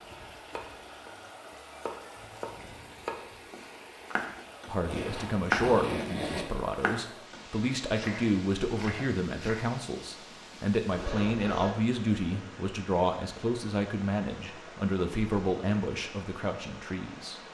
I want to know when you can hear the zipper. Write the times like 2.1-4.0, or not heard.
4.8-6.5, 10.9-11.8.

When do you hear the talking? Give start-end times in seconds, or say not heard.
4.7-17.4.